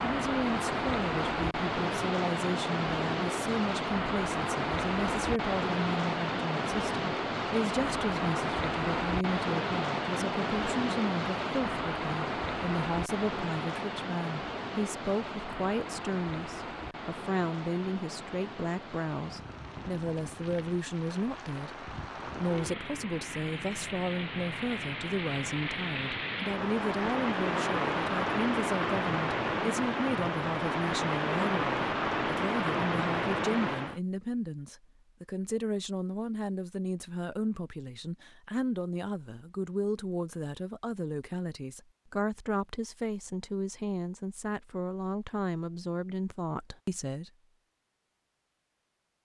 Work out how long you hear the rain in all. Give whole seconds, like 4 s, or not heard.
34 s.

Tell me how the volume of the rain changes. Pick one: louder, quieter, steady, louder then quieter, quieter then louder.
quieter then louder.